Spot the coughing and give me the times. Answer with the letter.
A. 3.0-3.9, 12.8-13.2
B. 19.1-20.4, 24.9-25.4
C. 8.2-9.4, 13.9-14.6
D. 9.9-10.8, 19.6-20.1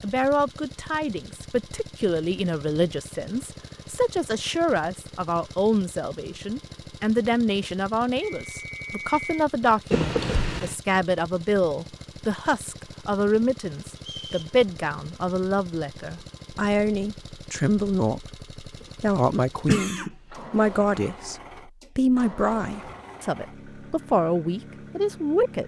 D.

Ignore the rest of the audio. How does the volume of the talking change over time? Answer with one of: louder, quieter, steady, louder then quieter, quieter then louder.
steady.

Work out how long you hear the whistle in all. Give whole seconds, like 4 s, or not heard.
2 s.